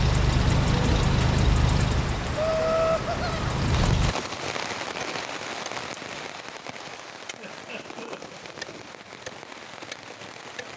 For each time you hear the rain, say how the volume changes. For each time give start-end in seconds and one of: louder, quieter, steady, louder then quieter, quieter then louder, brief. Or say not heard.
0.0-10.7 quieter.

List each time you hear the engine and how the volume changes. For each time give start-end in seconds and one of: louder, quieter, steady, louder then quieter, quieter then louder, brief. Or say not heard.
0.0-4.2 quieter then louder.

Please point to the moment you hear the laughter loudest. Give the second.
3 s.